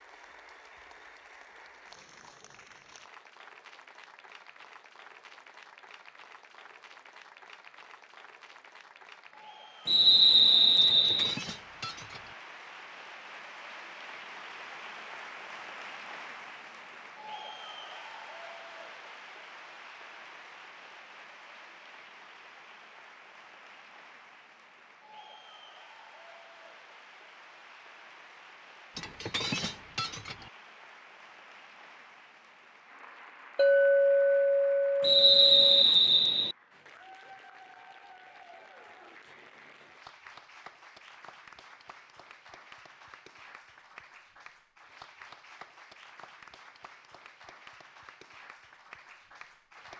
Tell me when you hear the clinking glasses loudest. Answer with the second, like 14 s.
34 s.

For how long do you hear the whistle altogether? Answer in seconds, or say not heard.
3 s.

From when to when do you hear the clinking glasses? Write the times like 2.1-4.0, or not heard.
10.8-12.3, 28.9-30.5, 33.5-35.9.